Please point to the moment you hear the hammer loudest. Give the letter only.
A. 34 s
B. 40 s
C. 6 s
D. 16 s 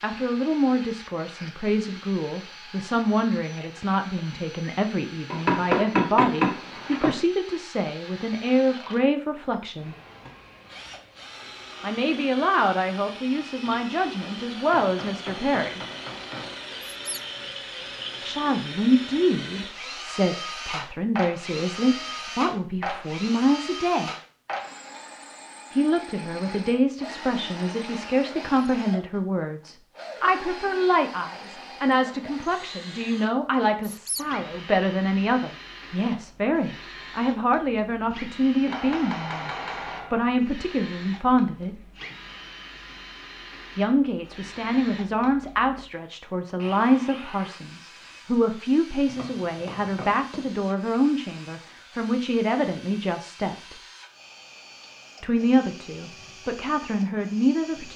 C.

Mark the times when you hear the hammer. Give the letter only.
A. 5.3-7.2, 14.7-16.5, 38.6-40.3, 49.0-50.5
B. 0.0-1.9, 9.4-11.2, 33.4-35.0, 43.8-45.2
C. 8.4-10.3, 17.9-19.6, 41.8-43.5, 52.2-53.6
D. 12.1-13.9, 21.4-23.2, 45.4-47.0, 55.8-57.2
A.